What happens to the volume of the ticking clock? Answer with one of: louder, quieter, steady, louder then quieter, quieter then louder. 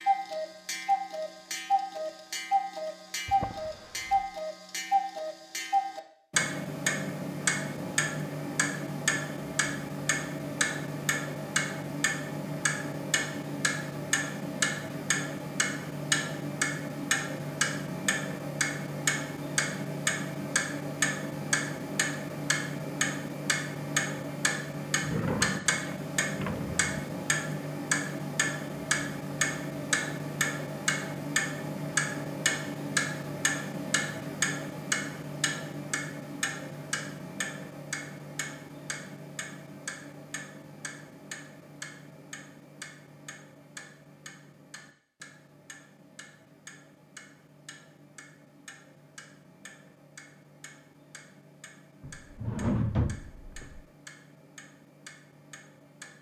quieter.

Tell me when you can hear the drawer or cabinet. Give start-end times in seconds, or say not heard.
3.2-4.2, 25.0-26.9, 52.0-53.8.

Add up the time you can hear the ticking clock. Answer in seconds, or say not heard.
56 s.